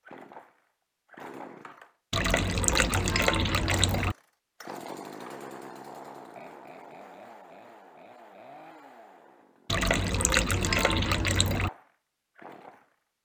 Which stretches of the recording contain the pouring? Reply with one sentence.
You can hear the pouring from 2.1 to 4.2 s and from 9.7 to 11.7 s.